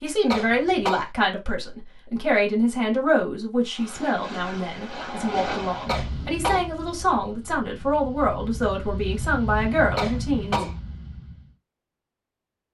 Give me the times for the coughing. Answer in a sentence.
You can hear the coughing from 0.3 to 1.1 s, from 5.8 to 6.7 s and from 9.9 to 10.8 s.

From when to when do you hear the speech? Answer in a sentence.
You can hear the speech from 0.0 to 10.7 s.